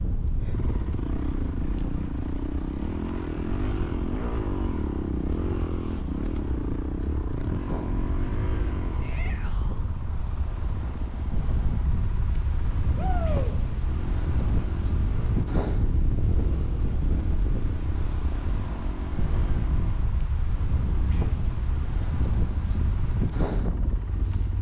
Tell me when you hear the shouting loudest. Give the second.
13 s.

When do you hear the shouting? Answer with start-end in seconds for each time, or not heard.
9.0-9.8, 12.9-13.6.